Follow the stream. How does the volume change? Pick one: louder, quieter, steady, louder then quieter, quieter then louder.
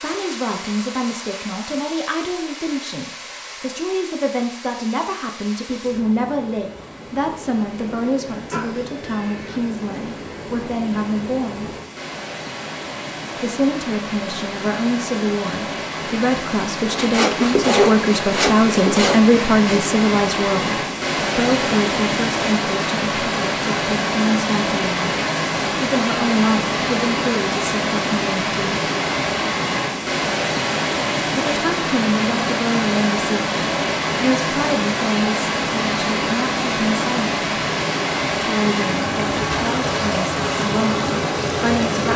louder.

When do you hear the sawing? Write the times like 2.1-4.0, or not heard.
16.9-19.8.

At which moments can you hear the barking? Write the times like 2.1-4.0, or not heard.
not heard.